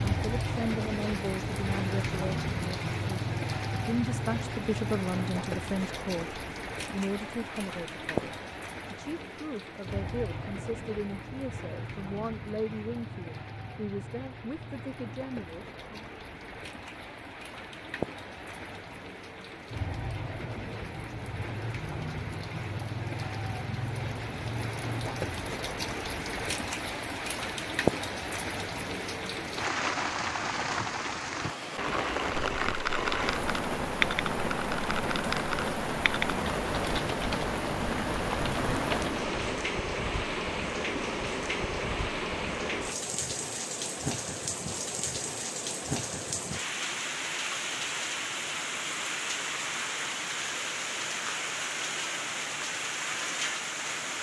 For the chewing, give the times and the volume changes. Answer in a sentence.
The chewing can't be heard in this clip.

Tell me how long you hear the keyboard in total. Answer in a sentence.
You can hear the keyboard for 7 seconds altogether.